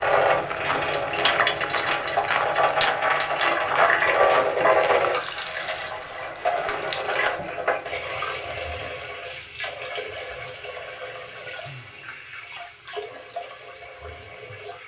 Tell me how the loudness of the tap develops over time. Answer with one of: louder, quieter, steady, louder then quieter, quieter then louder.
quieter.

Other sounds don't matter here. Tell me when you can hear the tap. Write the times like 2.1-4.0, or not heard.
0.0-14.8.